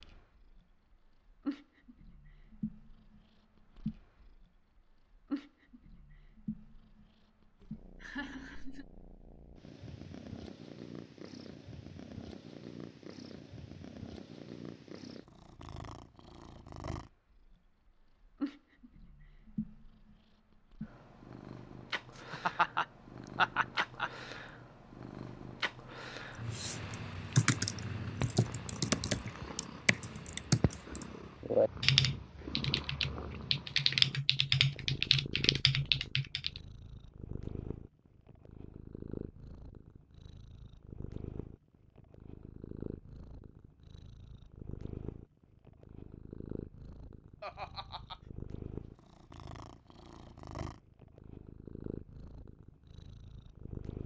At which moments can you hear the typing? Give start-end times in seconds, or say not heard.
26.5-36.6.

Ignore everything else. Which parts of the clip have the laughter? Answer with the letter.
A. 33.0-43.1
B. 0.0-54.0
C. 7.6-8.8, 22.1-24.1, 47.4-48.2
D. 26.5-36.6
C.